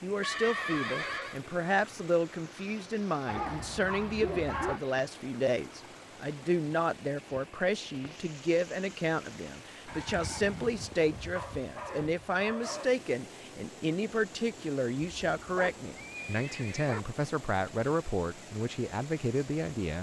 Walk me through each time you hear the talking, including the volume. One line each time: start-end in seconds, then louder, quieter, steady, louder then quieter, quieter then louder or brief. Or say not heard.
0.0-19.9 steady.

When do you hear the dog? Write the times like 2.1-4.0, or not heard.
3.2-4.8, 11.3-12.9.